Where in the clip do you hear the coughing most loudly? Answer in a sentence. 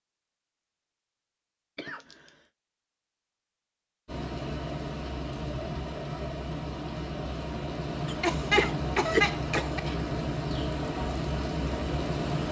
The volume of the coughing peaks at 9 seconds.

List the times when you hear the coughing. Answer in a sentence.
You can hear the coughing from 1.8 to 2.4 s and from 8.1 to 9.9 s.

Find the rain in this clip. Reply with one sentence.
You can hear the rain from 4.0 to 12.4 s.